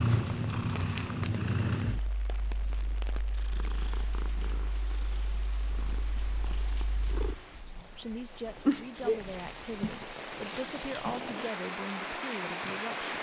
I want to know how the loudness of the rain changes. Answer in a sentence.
The volume of the rain goes up.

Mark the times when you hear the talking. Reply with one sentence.
The talking can be heard from 8.0 to 13.1 s.